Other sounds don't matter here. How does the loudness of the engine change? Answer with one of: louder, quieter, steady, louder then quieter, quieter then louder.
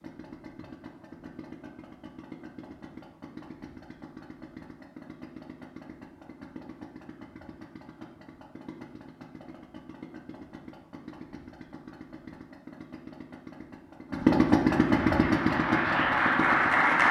louder.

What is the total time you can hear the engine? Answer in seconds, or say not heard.
17 s.